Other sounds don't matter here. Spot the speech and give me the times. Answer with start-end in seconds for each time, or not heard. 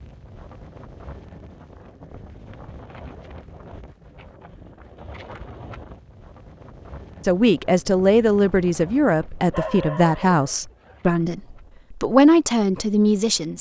7.2-13.5.